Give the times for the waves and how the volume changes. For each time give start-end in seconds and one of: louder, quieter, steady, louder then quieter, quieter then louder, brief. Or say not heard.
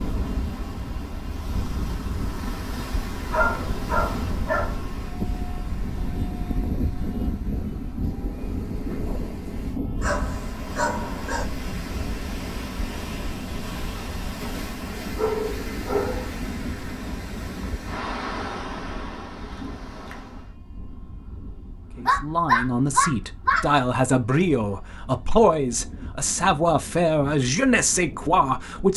0.0-20.5 quieter then louder.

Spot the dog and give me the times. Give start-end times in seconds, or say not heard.
3.3-5.0, 10.0-11.4, 14.9-16.4, 21.9-23.6.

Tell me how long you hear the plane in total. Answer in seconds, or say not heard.
29 s.